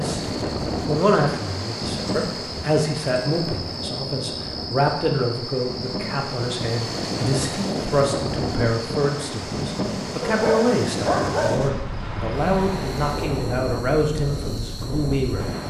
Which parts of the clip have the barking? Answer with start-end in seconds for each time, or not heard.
10.2-11.7.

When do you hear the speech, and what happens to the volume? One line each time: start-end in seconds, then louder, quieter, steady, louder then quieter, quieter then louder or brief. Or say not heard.
0.0-15.6 steady.